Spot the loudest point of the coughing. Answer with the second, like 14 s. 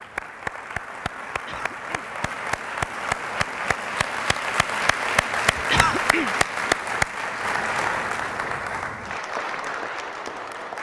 6 s.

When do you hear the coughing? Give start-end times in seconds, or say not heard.
1.4-2.1, 5.7-6.3.